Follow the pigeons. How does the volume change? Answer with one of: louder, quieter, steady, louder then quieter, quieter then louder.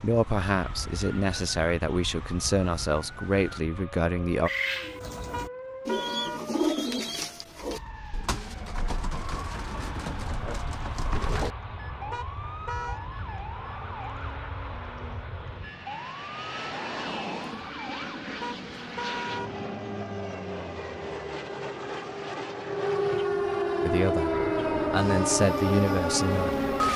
louder then quieter.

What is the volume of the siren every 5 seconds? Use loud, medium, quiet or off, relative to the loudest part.
quiet, quiet, quiet, quiet, loud, loud.